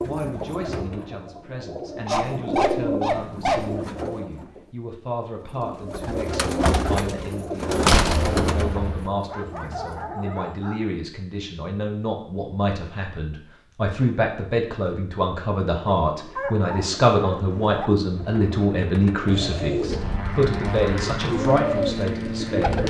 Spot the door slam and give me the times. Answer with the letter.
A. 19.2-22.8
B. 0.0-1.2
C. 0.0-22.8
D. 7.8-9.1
D.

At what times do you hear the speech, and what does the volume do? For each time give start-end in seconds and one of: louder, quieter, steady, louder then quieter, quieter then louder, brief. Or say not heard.
0.0-22.8 louder.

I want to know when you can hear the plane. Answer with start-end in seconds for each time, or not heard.
19.2-22.8.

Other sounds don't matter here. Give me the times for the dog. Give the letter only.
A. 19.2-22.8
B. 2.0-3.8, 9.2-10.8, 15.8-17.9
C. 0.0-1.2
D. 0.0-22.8
B.